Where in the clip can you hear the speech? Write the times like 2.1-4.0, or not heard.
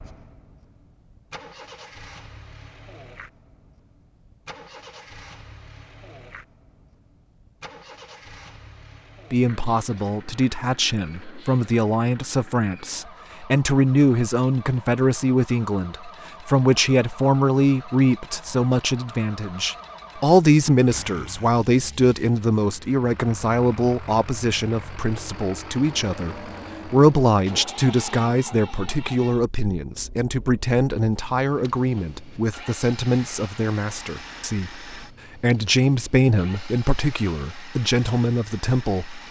9.3-34.7, 35.4-39.2.